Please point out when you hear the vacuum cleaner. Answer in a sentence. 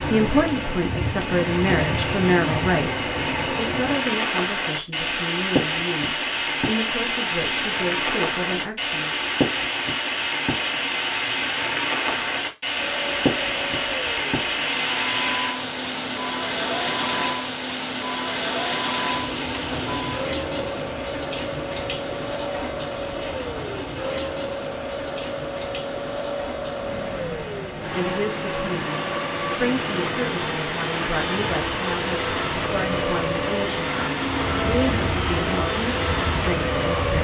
The vacuum cleaner can be heard from 12.8 to 37.1 s.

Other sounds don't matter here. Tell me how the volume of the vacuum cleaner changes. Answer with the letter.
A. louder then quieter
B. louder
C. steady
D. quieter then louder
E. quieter
B.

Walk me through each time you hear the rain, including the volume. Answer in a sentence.
You can hear the rain from 0.0 to 37.1 s, getting quieter.